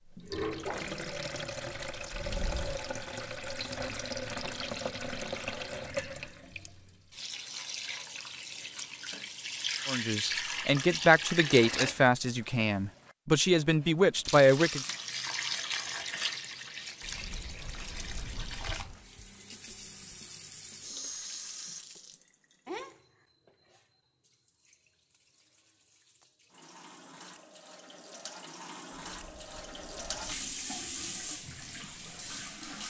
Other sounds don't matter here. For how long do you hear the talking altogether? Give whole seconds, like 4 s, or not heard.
5 s.